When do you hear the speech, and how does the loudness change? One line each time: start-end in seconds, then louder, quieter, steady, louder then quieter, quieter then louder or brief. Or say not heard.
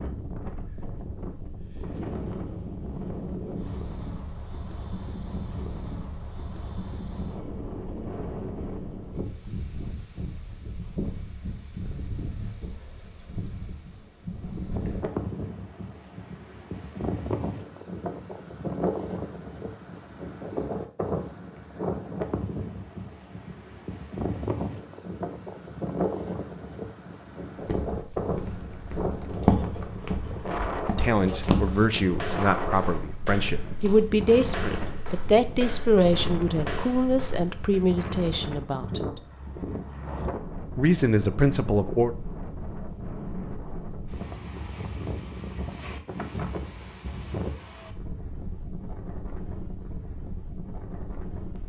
30.9-39.2 steady
40.8-42.1 brief.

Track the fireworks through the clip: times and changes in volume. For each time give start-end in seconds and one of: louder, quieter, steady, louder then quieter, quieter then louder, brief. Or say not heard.
not heard.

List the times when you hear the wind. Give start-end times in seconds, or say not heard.
0.0-51.6.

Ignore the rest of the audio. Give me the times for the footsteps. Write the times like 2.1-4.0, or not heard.
27.6-37.9.